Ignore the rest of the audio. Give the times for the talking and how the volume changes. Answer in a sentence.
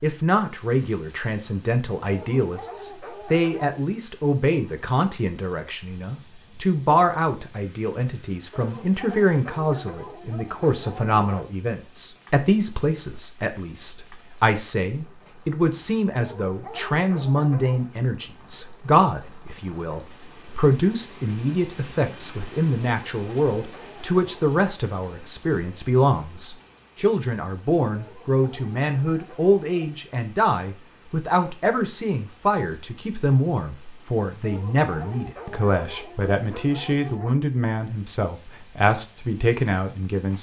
The talking can be heard from 0.0 to 40.3 s, at a steady volume.